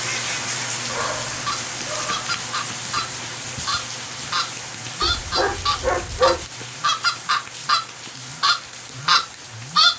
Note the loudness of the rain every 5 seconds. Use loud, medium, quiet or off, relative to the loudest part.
loud, medium.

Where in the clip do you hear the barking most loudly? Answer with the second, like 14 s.
6 s.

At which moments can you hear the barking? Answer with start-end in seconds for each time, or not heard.
0.8-2.3, 5.0-6.5.